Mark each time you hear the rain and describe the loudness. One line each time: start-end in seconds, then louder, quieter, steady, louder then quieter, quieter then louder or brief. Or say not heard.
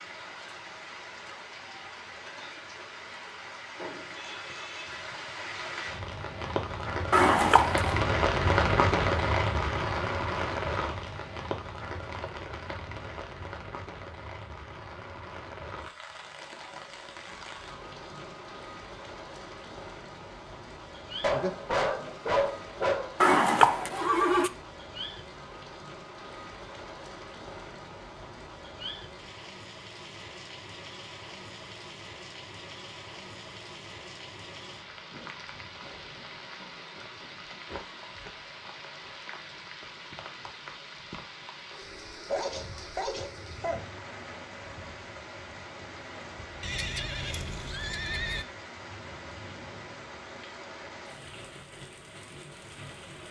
0.0-53.2 quieter.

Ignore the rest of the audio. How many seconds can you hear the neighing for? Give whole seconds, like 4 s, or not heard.
4 s.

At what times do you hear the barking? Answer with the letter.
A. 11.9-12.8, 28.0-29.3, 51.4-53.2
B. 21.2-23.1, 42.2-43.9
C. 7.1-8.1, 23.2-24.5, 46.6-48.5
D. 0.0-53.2
B.